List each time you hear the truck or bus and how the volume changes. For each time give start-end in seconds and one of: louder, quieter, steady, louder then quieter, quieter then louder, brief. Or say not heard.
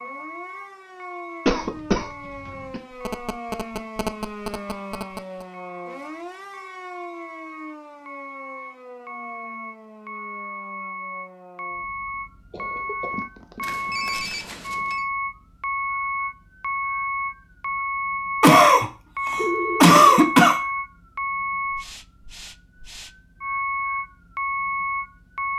0.0-25.5 louder.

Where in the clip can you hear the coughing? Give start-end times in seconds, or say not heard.
1.4-2.8, 12.5-14.1, 18.4-20.6.